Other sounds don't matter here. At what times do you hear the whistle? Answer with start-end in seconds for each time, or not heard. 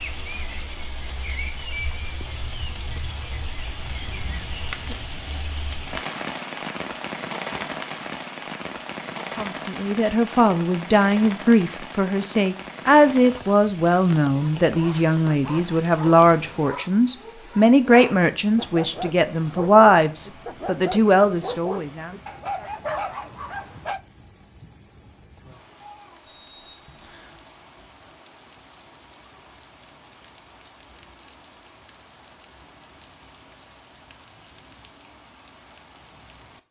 26.2-27.4.